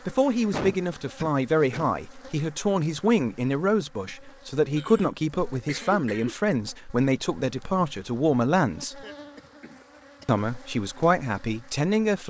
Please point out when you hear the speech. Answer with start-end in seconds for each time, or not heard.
0.1-9.1, 10.2-12.2.